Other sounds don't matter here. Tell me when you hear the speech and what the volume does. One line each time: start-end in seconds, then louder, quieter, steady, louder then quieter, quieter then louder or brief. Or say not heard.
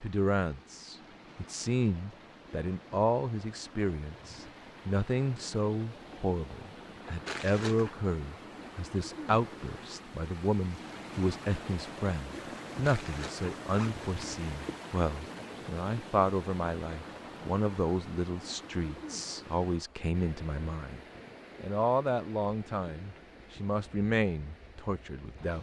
0.0-25.5 steady.